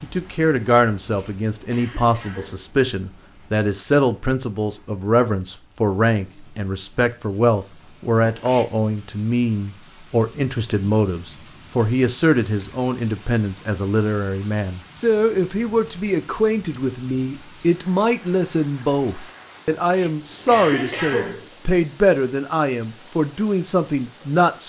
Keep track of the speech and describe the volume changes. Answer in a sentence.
The volume of the speech stays about the same.